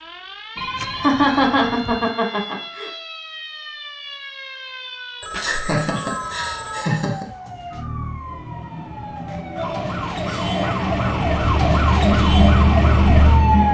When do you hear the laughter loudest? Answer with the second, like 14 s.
1 s.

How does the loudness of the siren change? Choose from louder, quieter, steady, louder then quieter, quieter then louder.
louder.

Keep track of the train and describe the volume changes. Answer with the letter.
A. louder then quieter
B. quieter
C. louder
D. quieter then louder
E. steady
C.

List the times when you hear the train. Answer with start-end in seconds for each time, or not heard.
8.0-13.6.